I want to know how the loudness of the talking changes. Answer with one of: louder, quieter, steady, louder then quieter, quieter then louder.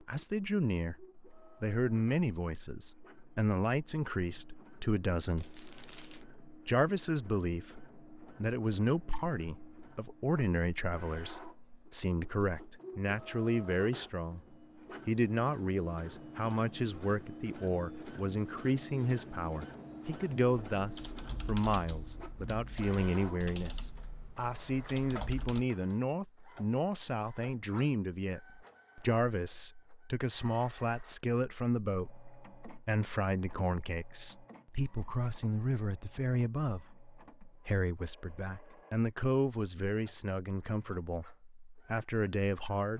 steady.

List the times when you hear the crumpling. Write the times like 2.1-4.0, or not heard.
5.3-6.2.